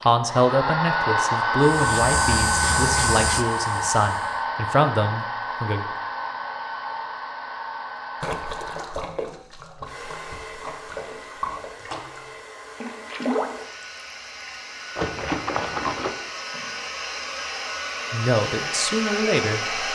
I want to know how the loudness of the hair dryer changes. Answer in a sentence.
The volume of the hair dryer goes down, then up.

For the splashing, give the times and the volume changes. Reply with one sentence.
The splashing can be heard from 8.2 to 16.1 s, getting louder.